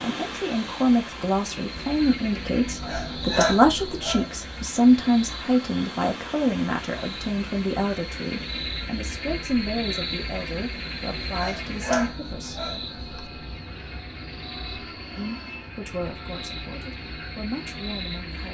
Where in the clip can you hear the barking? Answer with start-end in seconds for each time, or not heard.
2.8-4.7, 11.3-13.2.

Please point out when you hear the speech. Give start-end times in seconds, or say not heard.
0.0-12.7, 15.2-18.4.